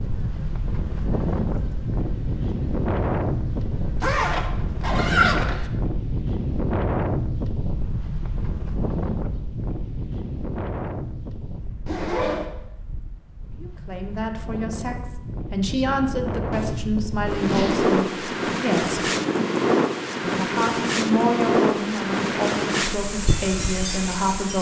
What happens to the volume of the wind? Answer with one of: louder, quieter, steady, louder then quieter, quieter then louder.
quieter then louder.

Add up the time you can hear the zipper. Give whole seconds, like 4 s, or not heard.
4 s.